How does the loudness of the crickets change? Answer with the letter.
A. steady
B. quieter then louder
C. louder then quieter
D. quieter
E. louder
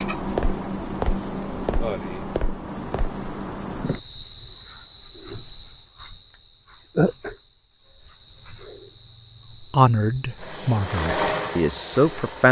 D.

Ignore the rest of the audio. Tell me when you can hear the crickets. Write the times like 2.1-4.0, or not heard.
0.0-12.4.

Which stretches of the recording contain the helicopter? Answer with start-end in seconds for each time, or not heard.
10.3-12.4.